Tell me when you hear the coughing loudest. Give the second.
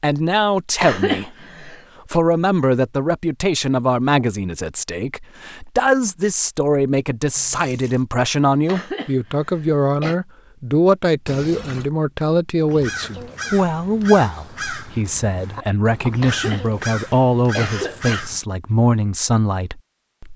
1 s.